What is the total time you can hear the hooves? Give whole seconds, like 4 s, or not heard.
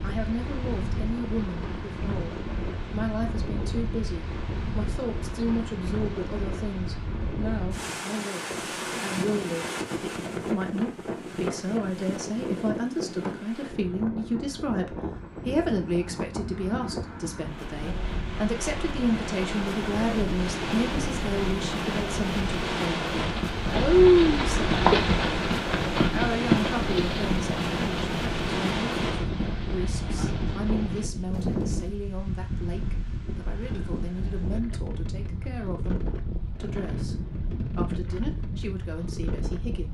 9 s.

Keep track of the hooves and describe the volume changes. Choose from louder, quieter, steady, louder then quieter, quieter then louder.
quieter.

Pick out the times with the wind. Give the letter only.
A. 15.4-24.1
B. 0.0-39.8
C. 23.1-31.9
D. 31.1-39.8
B.